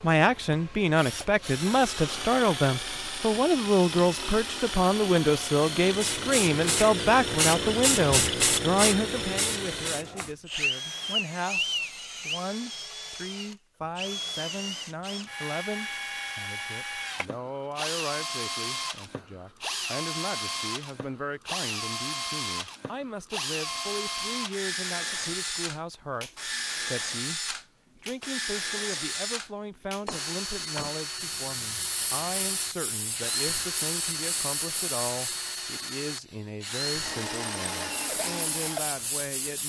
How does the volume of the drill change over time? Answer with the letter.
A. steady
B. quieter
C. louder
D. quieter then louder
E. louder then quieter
A.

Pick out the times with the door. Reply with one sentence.
The door can be heard from 30.1 to 30.9 s.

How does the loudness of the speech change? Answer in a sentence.
The volume of the speech goes down.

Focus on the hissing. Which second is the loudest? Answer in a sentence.
The volume of the hissing peaks at 8 seconds.